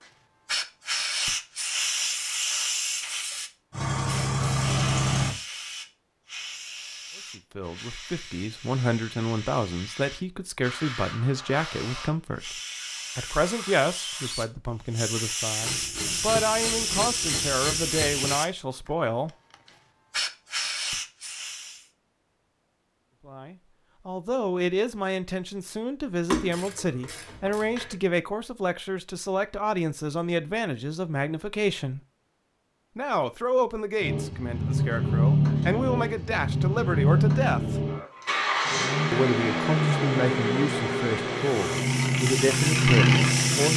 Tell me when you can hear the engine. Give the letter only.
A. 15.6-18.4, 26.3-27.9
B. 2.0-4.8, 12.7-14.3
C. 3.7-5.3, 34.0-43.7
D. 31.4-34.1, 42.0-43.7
C.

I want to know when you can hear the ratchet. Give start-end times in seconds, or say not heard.
15.6-18.4, 26.3-27.9.